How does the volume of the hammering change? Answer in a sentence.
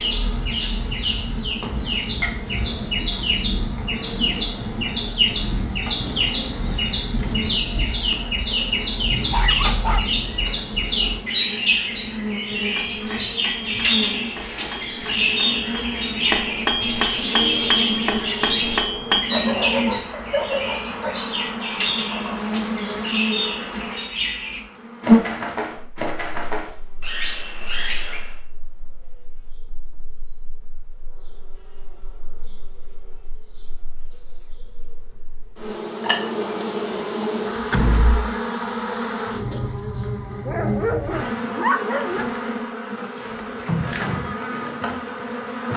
The loudness of the hammering goes up.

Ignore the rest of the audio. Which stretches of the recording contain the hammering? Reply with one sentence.
The hammering can be heard from 12.7 to 19.2 s.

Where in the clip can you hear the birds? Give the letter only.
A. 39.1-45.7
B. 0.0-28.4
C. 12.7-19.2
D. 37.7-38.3
B.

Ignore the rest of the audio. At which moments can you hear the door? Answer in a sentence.
You can hear the door from 37.7 to 38.3 s.